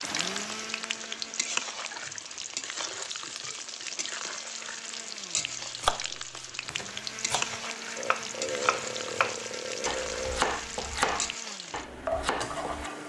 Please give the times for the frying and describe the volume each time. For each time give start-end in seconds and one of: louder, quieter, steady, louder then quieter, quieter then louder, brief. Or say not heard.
0.0-13.0 steady.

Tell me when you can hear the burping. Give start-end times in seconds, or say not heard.
1.9-3.6, 8.0-10.5.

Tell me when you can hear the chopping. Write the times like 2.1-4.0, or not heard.
5.3-12.9.